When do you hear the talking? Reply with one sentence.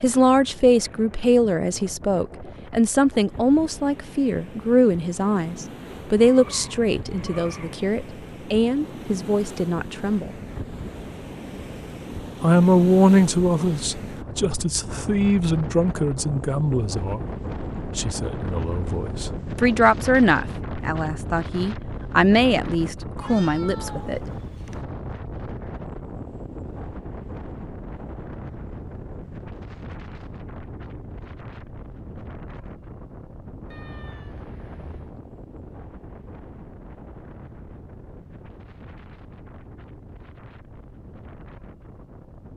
You can hear the talking from 0.0 to 10.3 s, from 12.4 to 17.4 s and from 17.9 to 24.2 s.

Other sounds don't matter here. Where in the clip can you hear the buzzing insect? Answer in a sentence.
You can't hear the buzzing insect here.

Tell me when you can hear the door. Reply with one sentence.
You can't hear the door here.